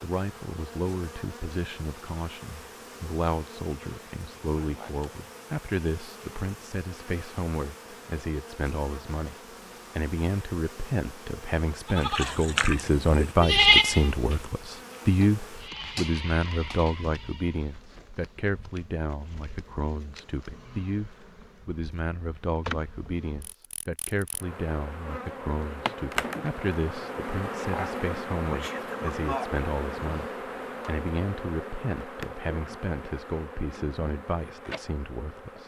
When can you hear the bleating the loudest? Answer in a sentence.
The loudest moment of the bleating is at 14 seconds.